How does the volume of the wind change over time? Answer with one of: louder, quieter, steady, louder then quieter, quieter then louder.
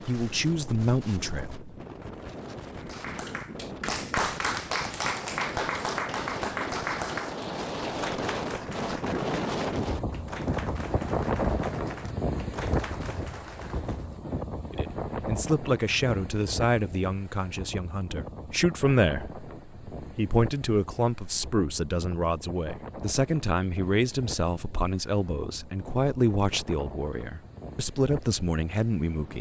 louder then quieter.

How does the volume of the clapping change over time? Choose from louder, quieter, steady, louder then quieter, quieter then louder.
quieter.